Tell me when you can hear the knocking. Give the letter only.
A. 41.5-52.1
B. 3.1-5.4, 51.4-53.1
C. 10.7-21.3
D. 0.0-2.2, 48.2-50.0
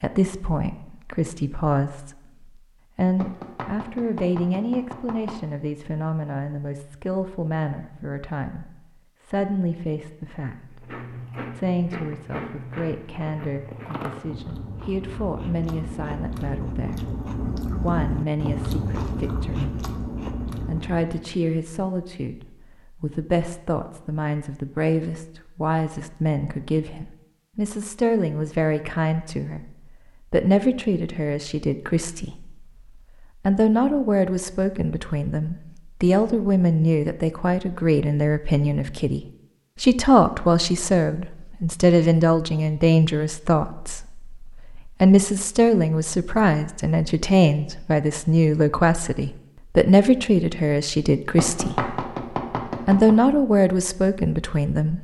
B.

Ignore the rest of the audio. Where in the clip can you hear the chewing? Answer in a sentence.
You can hear the chewing from 10.7 to 21.3 s.